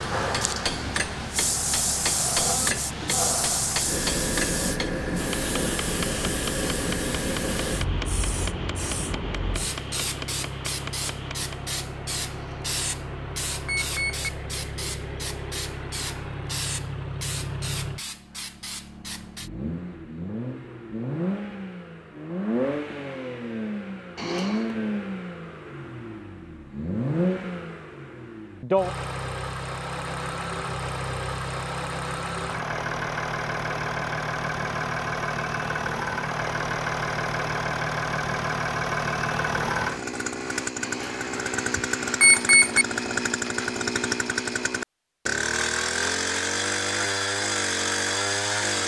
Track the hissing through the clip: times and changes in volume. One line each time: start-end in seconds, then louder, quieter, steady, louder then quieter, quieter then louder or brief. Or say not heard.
0.0-19.5 quieter.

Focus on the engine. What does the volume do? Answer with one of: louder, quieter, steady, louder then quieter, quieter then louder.
louder.